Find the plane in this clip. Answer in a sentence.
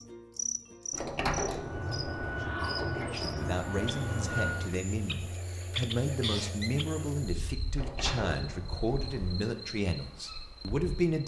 You can hear the plane from 1.5 to 4.8 s.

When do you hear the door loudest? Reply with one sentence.
The volume of the door peaks at 1 second.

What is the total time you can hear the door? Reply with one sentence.
The door can be heard for 4 seconds in total.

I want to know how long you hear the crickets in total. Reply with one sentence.
The crickets can be heard for 11 seconds in total.